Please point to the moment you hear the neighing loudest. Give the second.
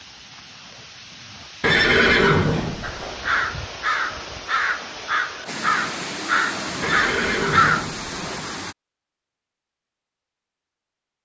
2 s.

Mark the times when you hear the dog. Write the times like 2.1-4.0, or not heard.
not heard.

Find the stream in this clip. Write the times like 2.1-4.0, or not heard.
0.0-8.8.